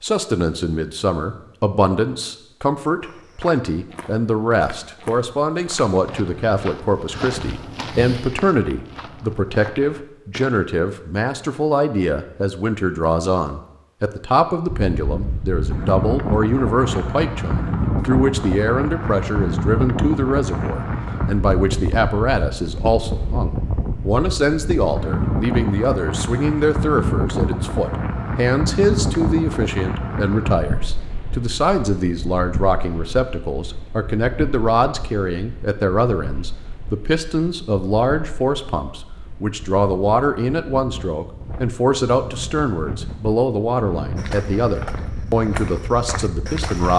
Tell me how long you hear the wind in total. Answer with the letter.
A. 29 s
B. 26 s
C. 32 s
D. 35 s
C.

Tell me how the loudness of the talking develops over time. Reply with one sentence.
The loudness of the talking stays about the same.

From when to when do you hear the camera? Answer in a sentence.
You can't hear the camera here.